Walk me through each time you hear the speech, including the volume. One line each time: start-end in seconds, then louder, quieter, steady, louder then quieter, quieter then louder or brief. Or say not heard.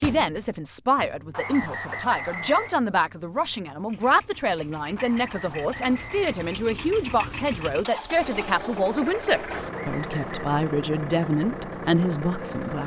0.0-12.8 steady.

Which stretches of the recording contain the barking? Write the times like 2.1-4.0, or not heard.
not heard.